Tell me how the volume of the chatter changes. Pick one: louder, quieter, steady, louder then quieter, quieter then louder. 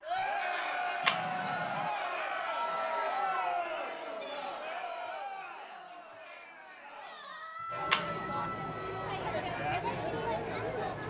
quieter then louder.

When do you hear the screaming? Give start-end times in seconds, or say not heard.
2.4-3.5, 7.2-9.2.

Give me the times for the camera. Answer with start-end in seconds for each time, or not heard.
1.1-1.9, 7.9-8.7.